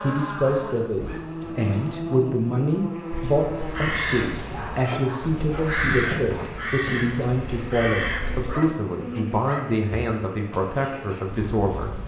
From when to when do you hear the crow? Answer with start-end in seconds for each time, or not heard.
3.1-8.5.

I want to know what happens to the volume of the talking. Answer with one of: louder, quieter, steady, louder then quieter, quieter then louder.
steady.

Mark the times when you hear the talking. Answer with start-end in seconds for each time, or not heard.
0.0-11.9.